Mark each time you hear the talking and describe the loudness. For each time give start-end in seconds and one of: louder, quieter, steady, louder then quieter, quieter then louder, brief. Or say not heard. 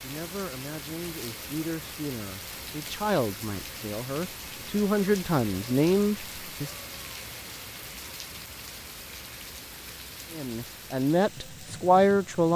0.0-6.8 louder
10.3-12.5 brief.